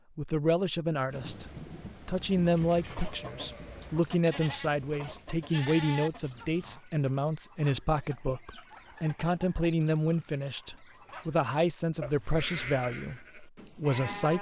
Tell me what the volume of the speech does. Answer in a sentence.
The volume of the speech stays about the same.